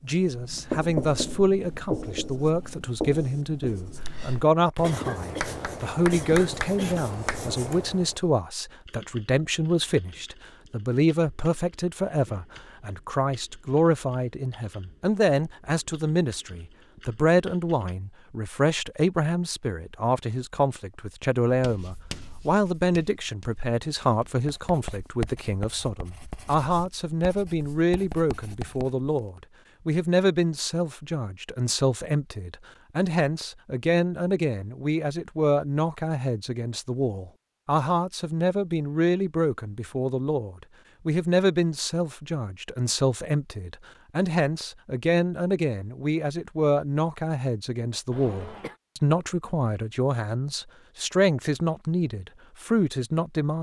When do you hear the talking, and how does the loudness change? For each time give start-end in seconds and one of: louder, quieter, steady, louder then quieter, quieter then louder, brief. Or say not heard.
0.0-53.5 steady.